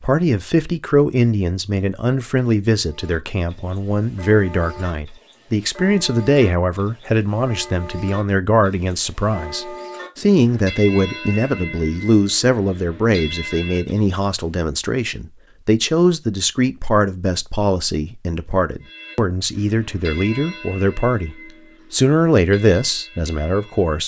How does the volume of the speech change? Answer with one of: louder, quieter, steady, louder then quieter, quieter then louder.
steady.